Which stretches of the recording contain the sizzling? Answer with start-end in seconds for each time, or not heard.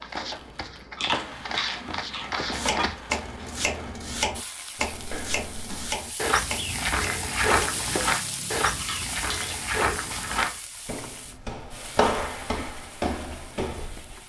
0.0-14.2.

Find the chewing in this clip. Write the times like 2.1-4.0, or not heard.
0.9-2.9, 8.7-10.6.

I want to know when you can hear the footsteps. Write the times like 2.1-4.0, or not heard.
0.0-3.0, 4.9-14.2.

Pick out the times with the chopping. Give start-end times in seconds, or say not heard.
2.5-8.8.